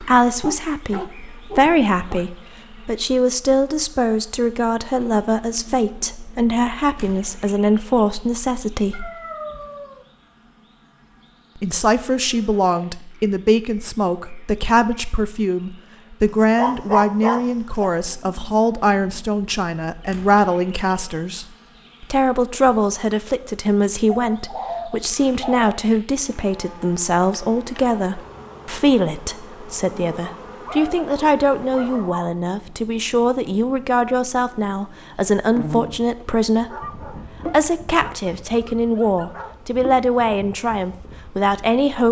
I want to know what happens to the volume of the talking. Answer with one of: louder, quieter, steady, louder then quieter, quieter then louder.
steady.